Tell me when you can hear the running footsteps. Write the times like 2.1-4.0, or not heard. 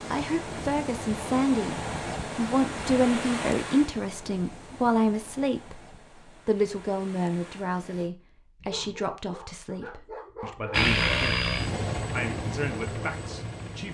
not heard.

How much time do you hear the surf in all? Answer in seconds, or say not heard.
8 s.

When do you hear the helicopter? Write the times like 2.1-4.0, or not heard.
10.7-13.8.